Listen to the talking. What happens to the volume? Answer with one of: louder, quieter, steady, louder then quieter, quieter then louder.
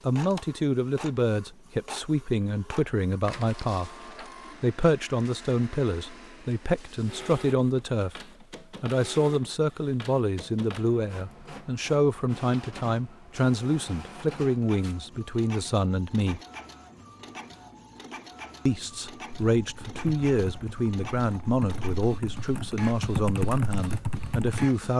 steady.